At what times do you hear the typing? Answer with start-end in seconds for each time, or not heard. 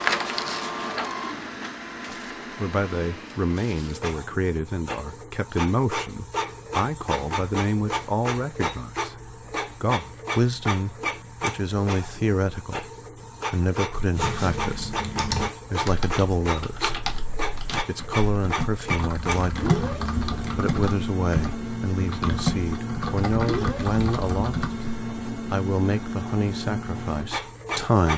14.1-25.1.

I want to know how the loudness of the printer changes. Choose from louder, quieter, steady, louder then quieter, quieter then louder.
steady.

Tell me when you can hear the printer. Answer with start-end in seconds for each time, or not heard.
0.0-28.1.